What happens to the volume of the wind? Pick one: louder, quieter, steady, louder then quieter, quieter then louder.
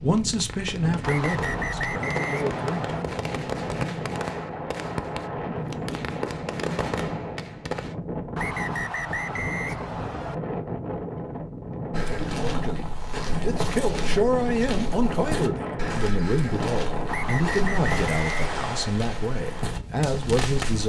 steady.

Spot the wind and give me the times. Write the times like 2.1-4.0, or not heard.
0.0-20.8.